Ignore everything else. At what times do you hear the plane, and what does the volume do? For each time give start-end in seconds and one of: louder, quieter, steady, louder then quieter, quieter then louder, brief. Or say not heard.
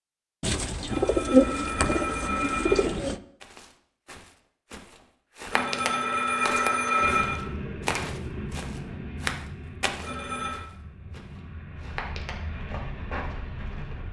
7.0-14.0 quieter then louder.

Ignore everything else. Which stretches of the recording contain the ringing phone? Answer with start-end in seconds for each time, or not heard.
0.8-2.8, 5.5-7.4, 10.0-10.7.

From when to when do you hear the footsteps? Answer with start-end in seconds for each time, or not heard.
3.4-14.0.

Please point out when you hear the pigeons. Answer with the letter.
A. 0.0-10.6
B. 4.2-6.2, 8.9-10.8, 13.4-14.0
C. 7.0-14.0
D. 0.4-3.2
D.